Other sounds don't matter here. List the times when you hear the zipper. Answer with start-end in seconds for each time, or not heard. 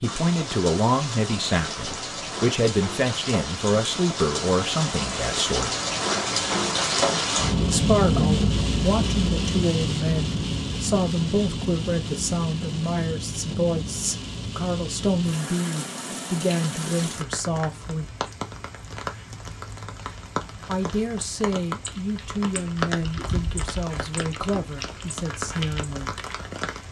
not heard.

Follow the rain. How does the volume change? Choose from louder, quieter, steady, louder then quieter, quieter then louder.
louder then quieter.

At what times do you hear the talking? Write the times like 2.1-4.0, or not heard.
0.0-5.7, 7.7-18.1, 20.6-26.1.